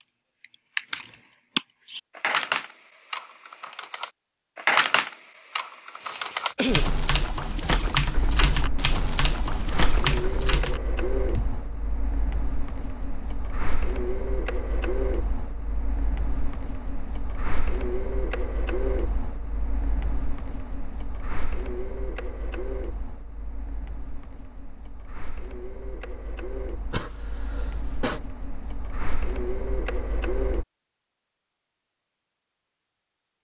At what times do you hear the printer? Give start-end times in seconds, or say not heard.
8.2-30.6.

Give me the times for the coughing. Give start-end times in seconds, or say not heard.
6.0-7.0, 26.9-28.2.